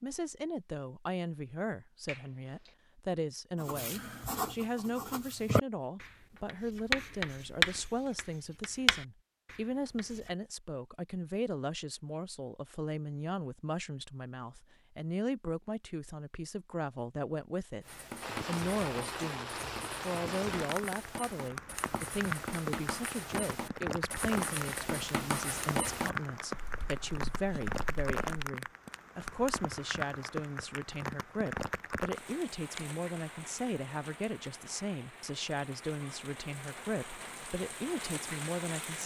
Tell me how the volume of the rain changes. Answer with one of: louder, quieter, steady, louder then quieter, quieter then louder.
quieter.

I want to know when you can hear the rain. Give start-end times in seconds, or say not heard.
18.2-39.0.